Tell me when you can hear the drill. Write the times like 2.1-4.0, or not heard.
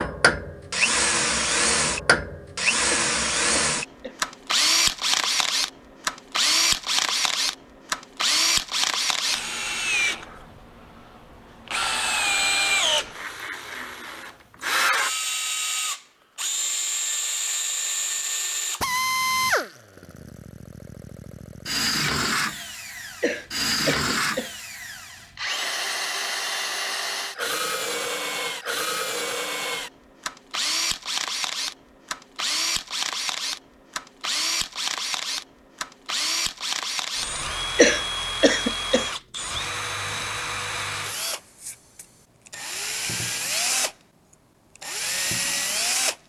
0.0-46.2.